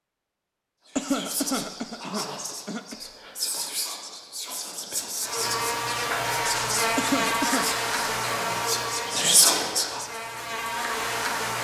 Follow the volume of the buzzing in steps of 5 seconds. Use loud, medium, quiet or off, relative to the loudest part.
off, loud, loud.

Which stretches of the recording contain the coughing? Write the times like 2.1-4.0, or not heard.
0.9-3.0, 7.0-7.7.